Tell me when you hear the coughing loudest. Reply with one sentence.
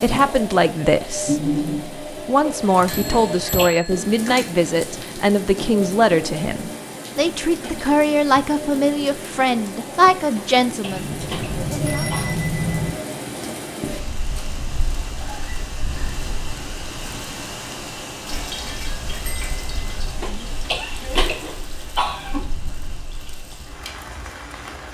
The loudest moment of the coughing is at 21 seconds.